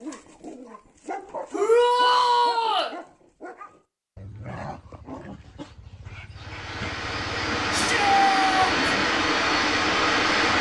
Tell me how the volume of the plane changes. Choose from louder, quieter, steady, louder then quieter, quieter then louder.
louder.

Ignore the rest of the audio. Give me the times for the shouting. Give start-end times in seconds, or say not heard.
1.5-2.9, 7.7-8.8.